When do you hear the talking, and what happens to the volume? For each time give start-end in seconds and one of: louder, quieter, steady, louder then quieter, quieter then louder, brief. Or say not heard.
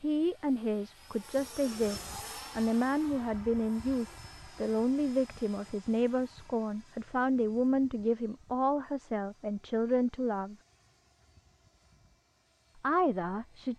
0.0-10.6 steady
12.8-13.7 brief.